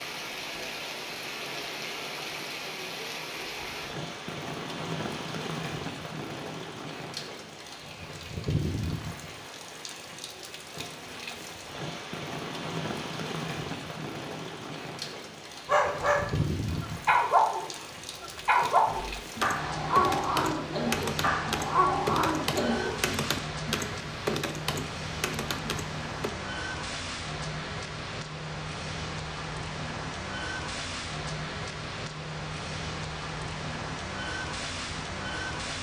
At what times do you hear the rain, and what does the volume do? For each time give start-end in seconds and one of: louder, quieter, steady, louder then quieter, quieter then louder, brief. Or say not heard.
0.0-35.7 steady.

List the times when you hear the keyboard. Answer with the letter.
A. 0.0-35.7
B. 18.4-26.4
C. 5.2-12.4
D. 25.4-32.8
B.